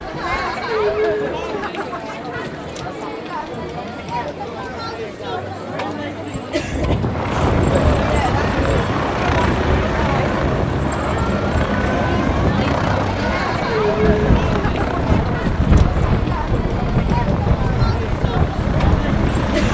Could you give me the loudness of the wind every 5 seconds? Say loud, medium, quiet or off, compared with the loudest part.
off, loud, loud, loud.